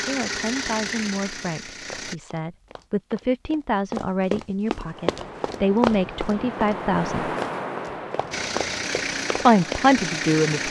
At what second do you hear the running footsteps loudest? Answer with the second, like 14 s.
6 s.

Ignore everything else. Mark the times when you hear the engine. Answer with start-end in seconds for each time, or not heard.
0.0-2.1, 8.3-10.6.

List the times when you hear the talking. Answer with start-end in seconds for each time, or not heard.
0.1-7.3, 9.3-10.6.